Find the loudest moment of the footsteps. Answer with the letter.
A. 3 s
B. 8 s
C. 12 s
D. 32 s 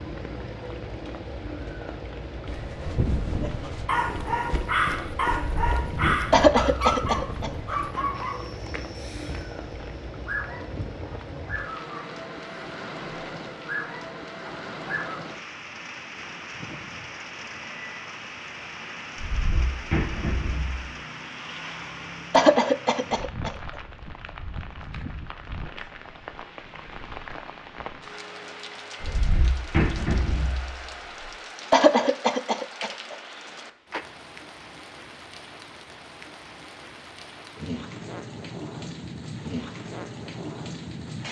A.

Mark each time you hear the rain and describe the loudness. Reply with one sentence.
You can hear the rain from 0.0 to 41.2 s, at a steady volume.